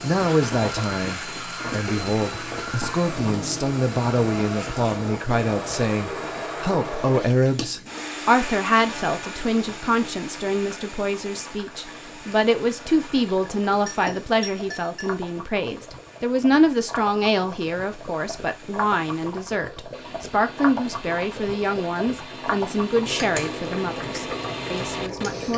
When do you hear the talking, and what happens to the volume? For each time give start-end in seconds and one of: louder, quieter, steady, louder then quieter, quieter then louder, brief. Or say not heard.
0.0-25.5 steady.